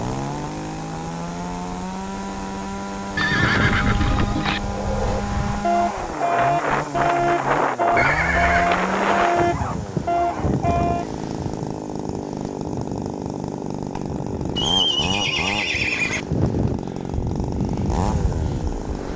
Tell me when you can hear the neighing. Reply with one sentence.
You can hear the neighing from 3.1 to 4.6 s, from 8.0 to 8.7 s and from 14.6 to 16.2 s.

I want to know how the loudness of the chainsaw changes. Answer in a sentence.
The loudness of the chainsaw stays about the same.